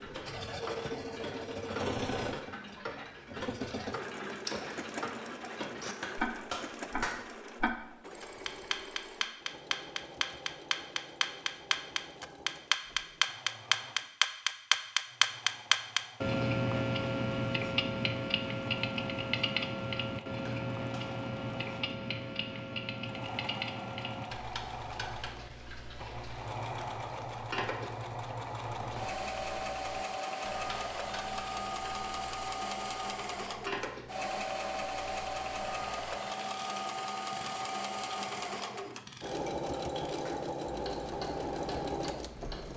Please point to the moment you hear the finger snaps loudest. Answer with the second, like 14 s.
7 s.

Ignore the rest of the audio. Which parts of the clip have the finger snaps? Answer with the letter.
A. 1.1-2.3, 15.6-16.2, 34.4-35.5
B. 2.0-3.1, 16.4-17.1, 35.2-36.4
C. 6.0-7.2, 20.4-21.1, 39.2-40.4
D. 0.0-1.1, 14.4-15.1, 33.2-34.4
C.